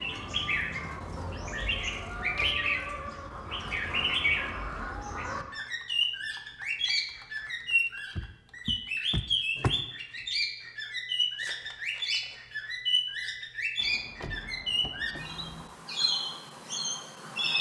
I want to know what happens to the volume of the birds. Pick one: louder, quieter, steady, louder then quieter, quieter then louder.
steady.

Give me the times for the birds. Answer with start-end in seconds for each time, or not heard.
0.0-17.5.